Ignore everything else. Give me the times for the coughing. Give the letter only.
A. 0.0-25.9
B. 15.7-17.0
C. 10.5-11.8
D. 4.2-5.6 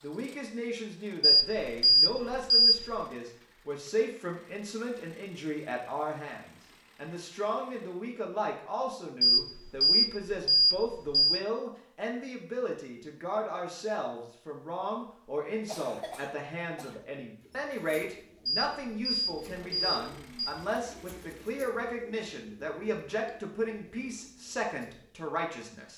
B.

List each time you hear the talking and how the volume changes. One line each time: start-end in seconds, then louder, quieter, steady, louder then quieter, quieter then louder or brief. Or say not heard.
0.0-25.9 steady.